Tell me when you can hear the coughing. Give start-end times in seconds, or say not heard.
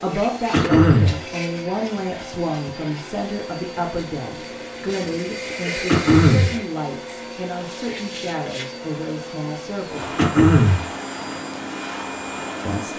0.5-1.2, 5.8-6.5, 10.2-10.8.